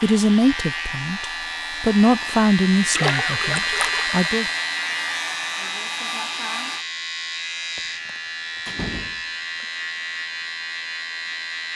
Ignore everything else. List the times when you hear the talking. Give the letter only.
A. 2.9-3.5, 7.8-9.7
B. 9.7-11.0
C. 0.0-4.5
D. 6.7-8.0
C.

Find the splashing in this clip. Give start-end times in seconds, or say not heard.
2.9-4.2.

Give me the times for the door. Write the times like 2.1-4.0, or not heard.
2.9-3.5, 7.8-9.7.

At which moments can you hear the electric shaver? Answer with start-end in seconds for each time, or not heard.
0.0-11.7.